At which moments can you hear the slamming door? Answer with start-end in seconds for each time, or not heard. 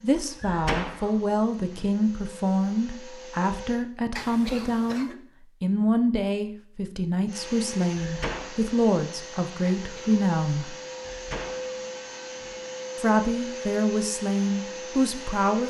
0.4-1.9, 8.0-8.6, 11.0-12.6.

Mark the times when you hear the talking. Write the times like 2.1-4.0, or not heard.
0.0-10.8, 12.9-15.6.